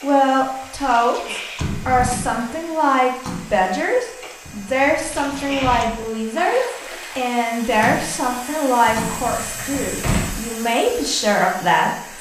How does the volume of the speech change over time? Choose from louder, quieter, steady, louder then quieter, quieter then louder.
steady.